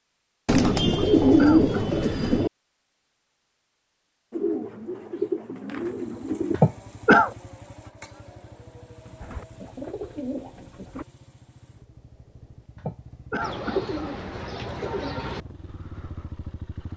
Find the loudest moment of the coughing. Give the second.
7 s.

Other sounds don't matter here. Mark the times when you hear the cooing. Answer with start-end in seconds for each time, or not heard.
0.5-2.5, 4.3-6.6, 9.2-11.1, 13.4-15.4.